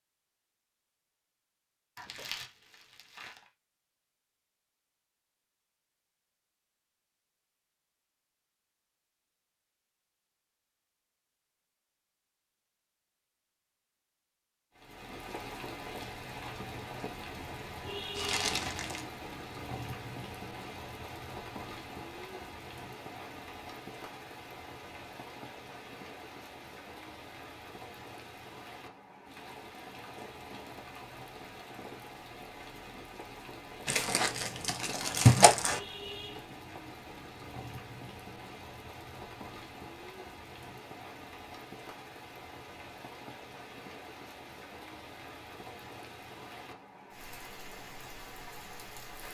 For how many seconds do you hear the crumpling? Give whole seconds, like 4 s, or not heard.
4 s.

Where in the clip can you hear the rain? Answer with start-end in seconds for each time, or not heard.
14.8-49.2.